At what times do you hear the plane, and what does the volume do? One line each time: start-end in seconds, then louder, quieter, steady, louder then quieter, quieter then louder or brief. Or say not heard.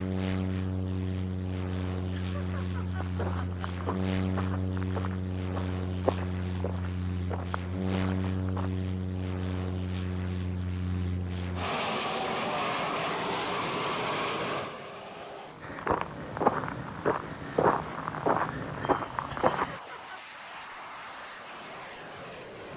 0.0-22.7 quieter.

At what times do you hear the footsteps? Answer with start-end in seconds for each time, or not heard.
3.0-8.7, 15.6-19.8.